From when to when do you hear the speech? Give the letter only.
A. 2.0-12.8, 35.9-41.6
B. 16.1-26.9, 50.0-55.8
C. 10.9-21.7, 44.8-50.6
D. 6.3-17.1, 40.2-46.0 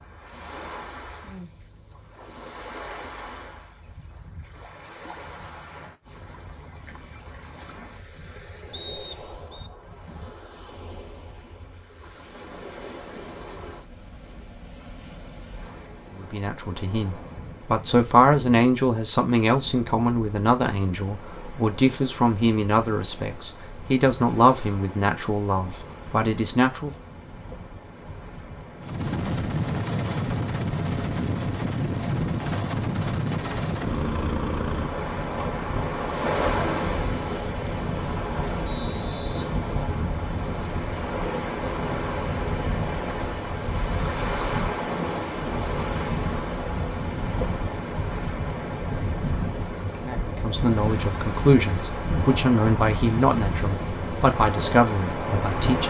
B.